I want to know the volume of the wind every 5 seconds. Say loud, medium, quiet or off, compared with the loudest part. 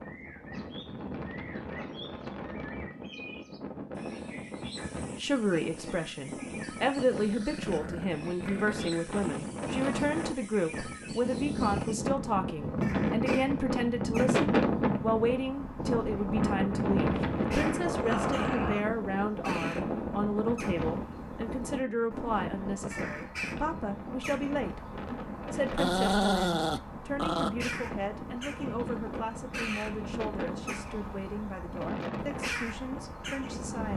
medium, medium, loud, loud, medium, medium, medium.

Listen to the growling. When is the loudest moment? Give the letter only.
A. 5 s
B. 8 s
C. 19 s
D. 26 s
D.